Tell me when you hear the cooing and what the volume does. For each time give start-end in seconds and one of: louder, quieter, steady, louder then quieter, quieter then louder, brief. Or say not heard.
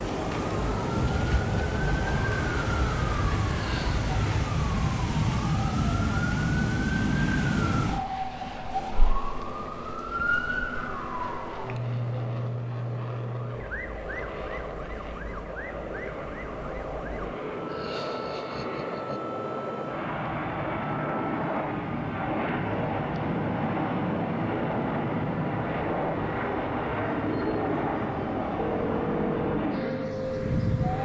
not heard.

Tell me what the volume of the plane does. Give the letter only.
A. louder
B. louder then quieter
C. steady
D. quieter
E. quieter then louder
A.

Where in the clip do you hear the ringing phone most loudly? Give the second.
29 s.